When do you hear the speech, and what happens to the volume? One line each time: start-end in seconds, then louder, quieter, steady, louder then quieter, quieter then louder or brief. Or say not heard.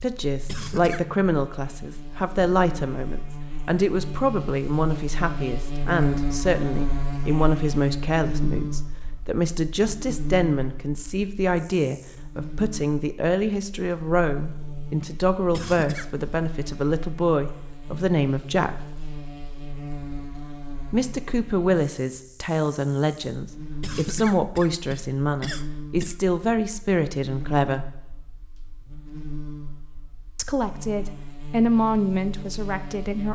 0.0-18.8 steady
20.9-27.9 steady
30.4-33.2 brief.